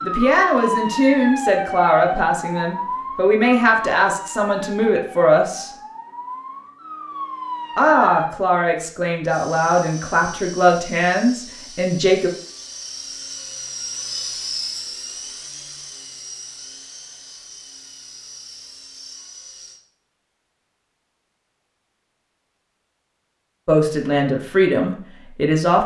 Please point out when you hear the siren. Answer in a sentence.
You can hear the siren from 0.0 to 8.3 s.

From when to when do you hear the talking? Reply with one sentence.
The talking can be heard from 0.0 to 5.7 s, from 7.8 to 12.3 s and from 23.6 to 25.8 s.